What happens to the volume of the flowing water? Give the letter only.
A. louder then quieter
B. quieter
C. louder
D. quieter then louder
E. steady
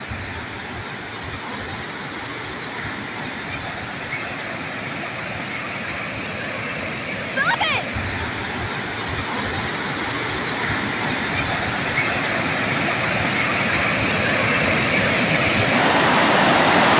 C.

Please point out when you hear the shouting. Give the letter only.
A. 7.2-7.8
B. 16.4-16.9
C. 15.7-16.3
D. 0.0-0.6
A.